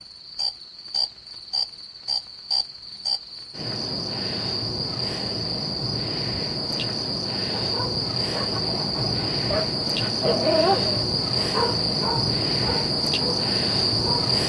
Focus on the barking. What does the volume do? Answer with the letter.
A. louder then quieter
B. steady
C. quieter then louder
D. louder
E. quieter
A.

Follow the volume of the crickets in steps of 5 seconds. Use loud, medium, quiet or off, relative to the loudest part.
medium, loud, loud.